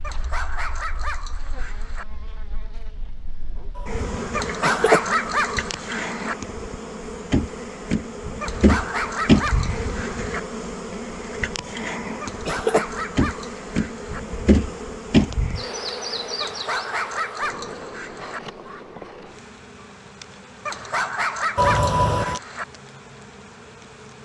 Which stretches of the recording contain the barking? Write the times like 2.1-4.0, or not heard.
0.0-2.0, 4.3-6.3, 8.4-10.4, 12.2-14.2, 16.4-18.4, 20.6-22.6.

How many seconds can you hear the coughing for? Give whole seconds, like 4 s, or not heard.
2 s.